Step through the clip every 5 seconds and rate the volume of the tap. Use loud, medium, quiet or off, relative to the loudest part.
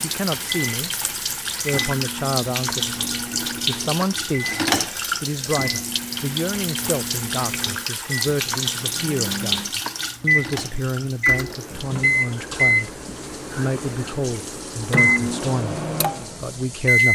loud, loud, medium, quiet.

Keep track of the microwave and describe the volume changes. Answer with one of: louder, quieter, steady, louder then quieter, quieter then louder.
louder.